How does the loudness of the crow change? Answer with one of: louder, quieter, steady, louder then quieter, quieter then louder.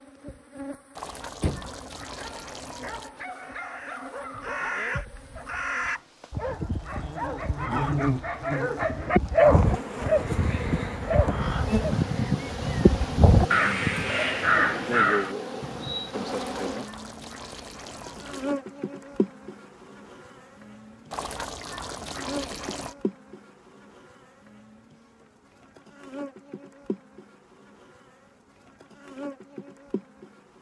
louder.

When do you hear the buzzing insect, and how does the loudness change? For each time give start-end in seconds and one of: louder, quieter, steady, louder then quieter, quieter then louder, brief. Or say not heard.
0.0-30.5 louder then quieter.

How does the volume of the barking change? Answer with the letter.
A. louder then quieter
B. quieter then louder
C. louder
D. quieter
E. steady
C.